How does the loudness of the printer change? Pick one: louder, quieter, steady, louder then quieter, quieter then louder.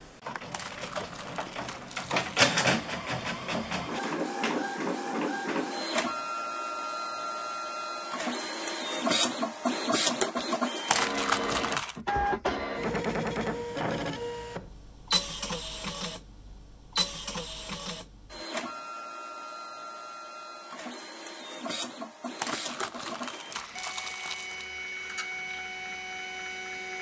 quieter.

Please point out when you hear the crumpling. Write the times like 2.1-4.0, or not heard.
0.5-2.5, 10.8-12.0, 22.4-24.7.